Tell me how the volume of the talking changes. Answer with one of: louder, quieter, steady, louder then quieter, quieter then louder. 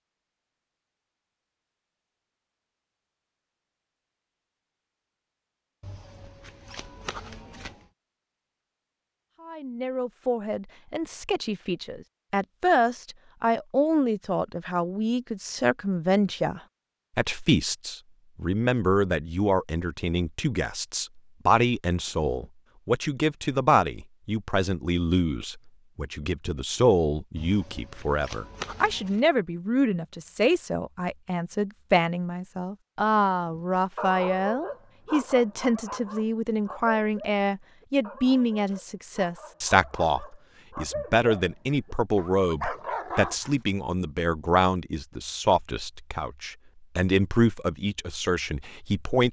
steady.